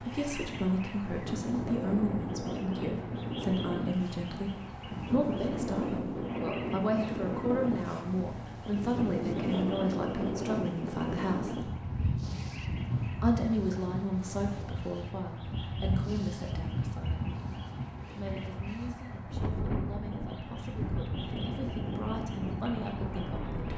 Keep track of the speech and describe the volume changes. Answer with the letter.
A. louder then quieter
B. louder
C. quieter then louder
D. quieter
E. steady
D.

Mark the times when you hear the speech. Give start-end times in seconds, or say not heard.
0.0-11.7, 13.2-17.4, 18.1-23.7.